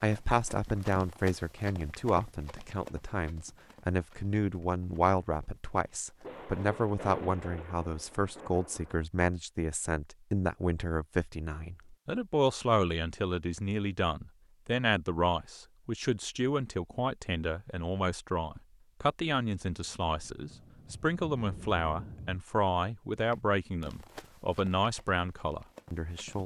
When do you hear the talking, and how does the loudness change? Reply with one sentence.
You can hear the talking from 0.0 to 26.4 s, at a steady volume.